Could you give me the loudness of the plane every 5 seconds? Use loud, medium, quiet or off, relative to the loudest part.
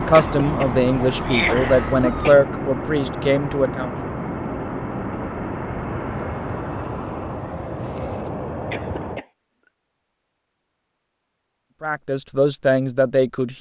loud, loud, off.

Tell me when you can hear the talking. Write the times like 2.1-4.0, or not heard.
0.0-3.9, 11.8-13.5.